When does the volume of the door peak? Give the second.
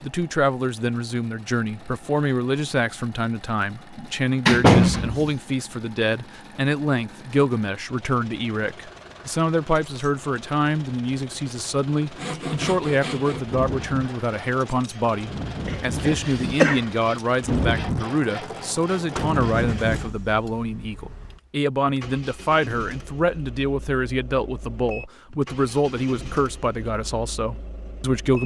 5 s.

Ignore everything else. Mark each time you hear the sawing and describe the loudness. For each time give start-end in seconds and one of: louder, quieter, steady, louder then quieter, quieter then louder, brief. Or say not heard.
12.1-20.1 quieter then louder.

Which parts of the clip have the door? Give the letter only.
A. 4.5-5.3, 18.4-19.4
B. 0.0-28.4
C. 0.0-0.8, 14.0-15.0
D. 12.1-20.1
A.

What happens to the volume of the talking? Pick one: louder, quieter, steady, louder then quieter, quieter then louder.
steady.